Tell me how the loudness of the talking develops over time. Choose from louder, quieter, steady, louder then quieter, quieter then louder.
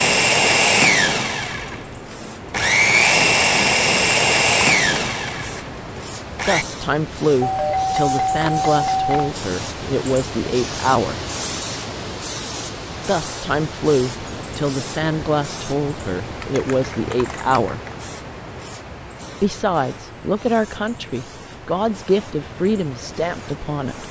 steady.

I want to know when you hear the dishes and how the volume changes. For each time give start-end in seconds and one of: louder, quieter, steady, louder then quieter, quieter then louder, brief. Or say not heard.
not heard.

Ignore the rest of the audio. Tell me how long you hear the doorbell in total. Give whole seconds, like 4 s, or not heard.
2 s.